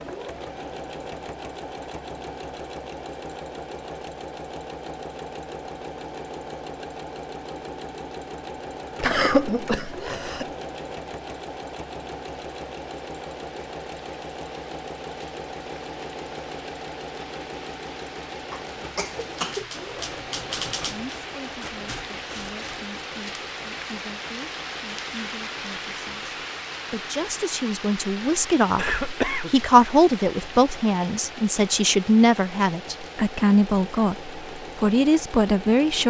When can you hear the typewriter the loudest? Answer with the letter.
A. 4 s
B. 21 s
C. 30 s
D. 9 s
B.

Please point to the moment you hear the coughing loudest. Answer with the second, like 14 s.
9 s.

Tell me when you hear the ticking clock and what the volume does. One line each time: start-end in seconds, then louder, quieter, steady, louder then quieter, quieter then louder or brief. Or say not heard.
not heard.